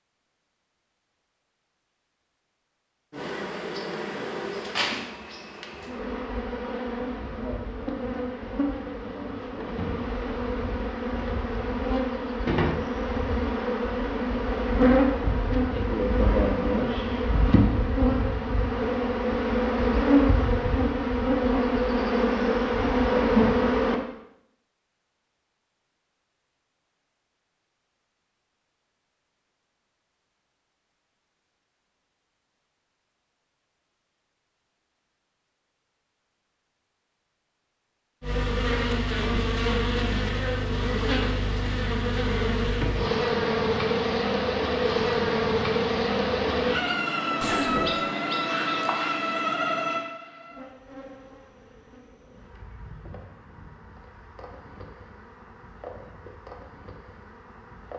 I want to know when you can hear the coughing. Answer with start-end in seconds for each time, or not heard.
47.4-47.9.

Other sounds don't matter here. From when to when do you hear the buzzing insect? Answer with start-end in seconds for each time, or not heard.
3.1-23.9, 38.2-57.9.